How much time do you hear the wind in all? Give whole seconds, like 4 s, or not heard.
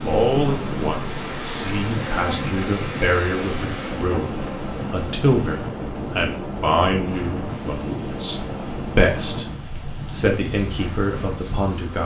12 s.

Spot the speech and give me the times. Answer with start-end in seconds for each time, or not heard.
0.0-12.0.